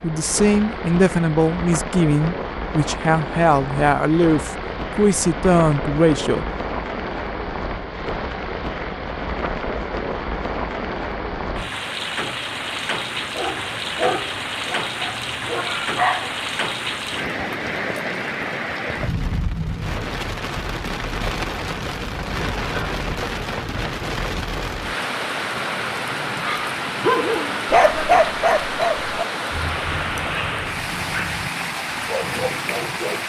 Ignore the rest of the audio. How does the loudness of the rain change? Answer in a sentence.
The volume of the rain stays about the same.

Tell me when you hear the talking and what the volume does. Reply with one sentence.
The talking can be heard from 0.0 to 6.5 s, at a steady volume.